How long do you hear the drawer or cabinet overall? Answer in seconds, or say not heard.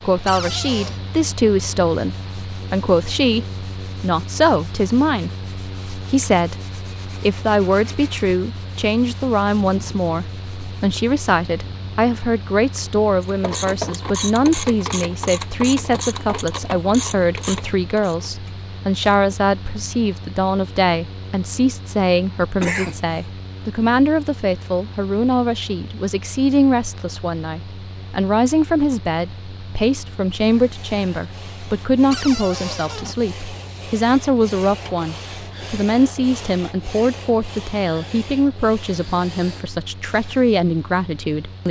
2 s.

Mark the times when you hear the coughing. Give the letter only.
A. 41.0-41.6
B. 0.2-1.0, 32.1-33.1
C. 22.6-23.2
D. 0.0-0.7
C.